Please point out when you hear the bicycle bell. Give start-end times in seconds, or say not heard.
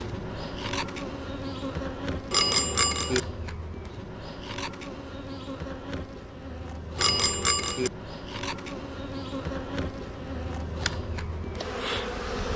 2.3-3.2, 7.0-7.9.